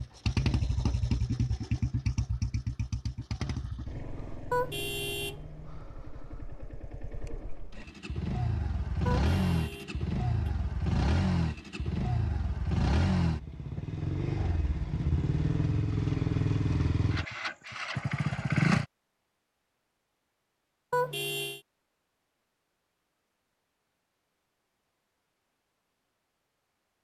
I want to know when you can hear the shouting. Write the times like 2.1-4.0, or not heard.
not heard.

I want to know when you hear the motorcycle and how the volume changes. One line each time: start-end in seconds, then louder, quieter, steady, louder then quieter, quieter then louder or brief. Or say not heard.
0.0-18.9 quieter then louder.